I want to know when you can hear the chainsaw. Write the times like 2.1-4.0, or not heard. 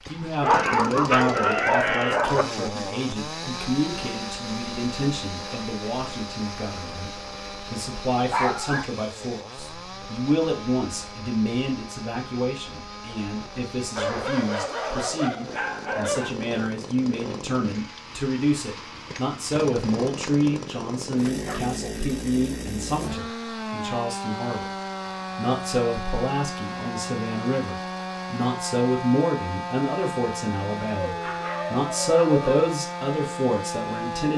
0.0-34.3.